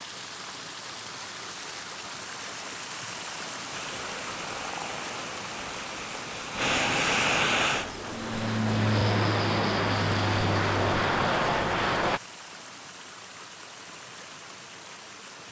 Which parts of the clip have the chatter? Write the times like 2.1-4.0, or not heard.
not heard.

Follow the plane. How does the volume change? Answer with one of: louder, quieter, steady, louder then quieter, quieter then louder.
louder.